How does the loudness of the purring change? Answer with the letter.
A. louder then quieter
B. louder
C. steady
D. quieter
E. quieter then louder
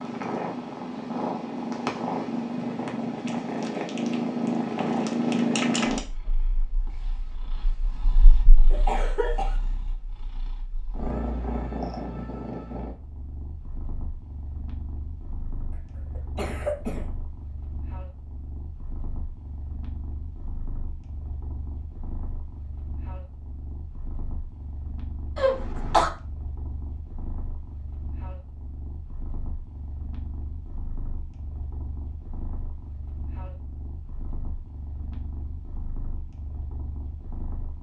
D.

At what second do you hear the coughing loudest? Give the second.
26 s.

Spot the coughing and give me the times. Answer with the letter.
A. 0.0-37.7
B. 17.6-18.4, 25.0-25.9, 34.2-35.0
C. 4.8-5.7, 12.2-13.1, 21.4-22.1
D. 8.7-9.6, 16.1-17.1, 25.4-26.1
D.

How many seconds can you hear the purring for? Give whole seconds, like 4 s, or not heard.
38 s.